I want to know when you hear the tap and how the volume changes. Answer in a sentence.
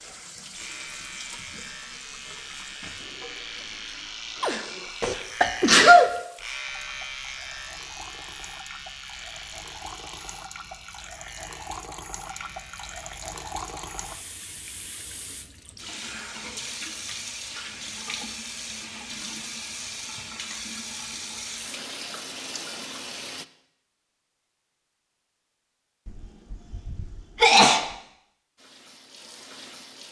The tap can be heard from 0.0 to 23.4 s, getting louder; and briefly from 28.6 to 30.0 s.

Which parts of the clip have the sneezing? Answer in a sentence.
You can hear the sneezing from 4.4 to 6.1 s and from 26.1 to 27.9 s.